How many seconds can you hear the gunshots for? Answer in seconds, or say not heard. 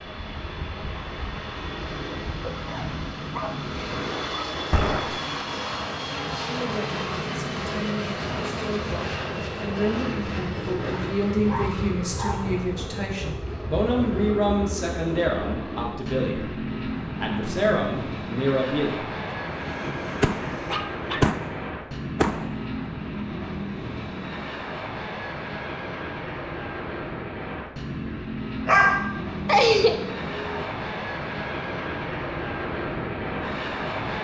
4 s.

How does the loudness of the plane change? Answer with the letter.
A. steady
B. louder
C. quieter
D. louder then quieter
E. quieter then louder
A.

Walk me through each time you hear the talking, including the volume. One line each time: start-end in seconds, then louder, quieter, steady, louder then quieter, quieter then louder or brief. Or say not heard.
6.5-16.4 louder
17.1-19.1 brief.